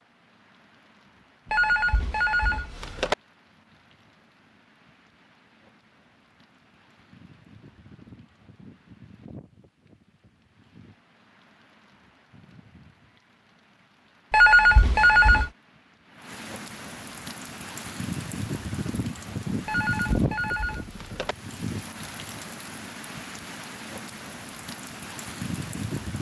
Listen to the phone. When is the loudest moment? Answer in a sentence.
The volume of the phone peaks at 15 seconds.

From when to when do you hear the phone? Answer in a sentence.
You can hear the phone from 1.5 to 3.1 s, from 14.3 to 15.5 s and from 19.6 to 21.4 s.